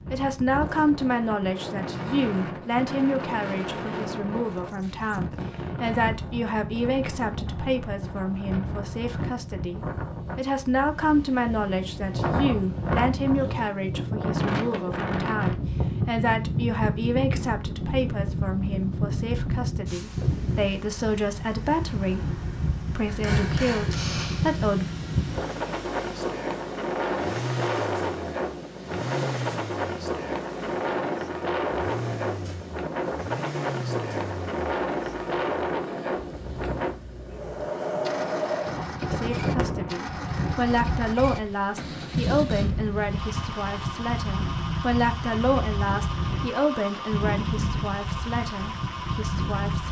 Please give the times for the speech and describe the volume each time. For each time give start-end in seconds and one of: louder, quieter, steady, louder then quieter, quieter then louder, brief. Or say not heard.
0.1-24.9 steady
39.1-49.8 quieter.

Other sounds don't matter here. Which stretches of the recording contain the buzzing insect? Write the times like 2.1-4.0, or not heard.
not heard.